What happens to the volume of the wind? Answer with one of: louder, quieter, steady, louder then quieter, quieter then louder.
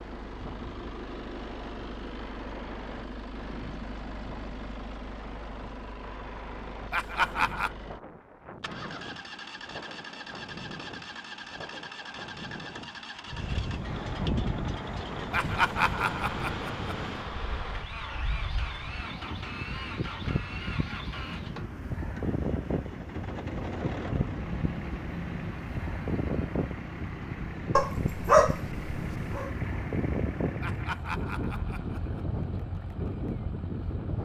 louder.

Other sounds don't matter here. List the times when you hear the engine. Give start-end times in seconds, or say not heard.
0.0-34.2.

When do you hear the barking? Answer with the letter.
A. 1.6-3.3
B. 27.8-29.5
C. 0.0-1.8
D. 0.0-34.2
B.